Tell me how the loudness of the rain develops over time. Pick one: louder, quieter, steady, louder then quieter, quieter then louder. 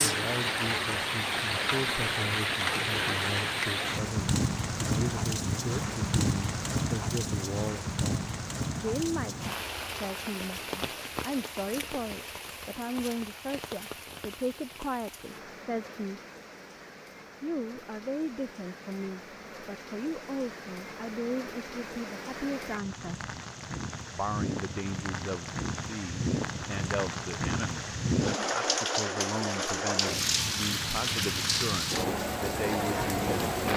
quieter then louder.